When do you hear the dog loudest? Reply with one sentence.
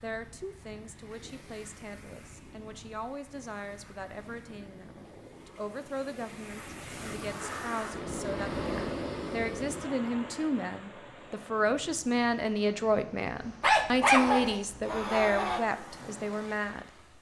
The loudest moment of the dog is at 14 seconds.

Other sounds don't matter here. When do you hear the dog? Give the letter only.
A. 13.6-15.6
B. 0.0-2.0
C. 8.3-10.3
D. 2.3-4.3
A.